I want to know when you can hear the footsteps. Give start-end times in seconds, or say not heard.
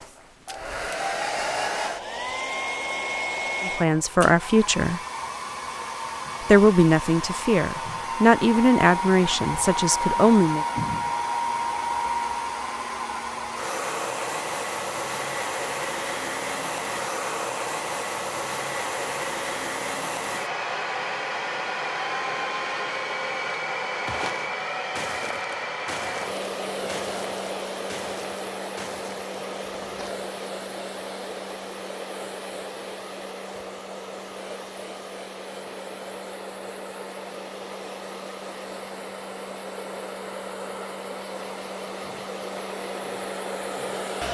24.1-30.2.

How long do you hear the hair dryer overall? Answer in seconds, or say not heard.
44 s.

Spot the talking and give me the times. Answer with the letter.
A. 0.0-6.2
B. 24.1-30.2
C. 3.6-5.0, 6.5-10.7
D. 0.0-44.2
C.